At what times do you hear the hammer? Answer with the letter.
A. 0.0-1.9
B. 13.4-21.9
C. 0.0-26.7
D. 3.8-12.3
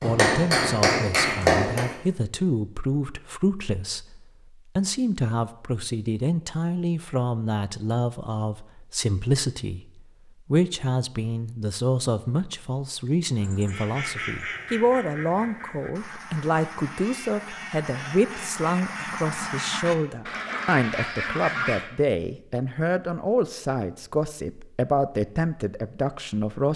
A.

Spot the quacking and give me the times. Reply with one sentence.
You can hear the quacking from 13.4 to 21.9 s.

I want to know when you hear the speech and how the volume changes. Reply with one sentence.
The speech can be heard from 0.0 to 26.7 s, at a steady volume.